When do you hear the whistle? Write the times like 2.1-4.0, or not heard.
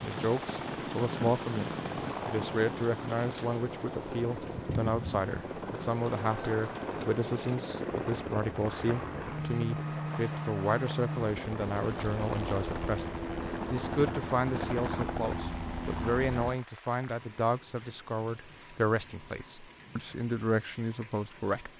not heard.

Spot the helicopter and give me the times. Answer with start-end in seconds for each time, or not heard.
0.2-16.6.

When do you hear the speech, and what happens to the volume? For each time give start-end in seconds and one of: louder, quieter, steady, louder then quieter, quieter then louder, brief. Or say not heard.
0.0-21.7 steady.